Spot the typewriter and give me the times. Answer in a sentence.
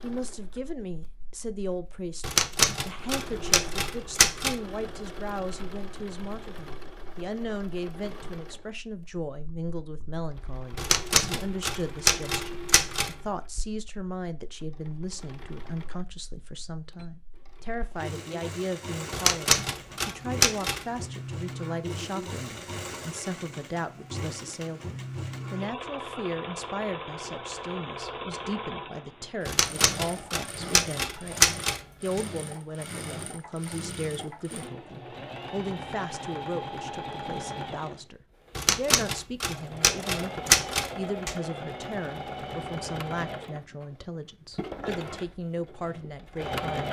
You can hear the typewriter from 2.2 to 4.5 s, from 10.8 to 13.2 s, from 19.1 to 20.9 s, from 29.4 to 32.2 s and from 38.5 to 41.4 s.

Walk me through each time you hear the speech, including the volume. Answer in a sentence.
You can hear the speech from 0.0 to 46.8 s, at a steady volume.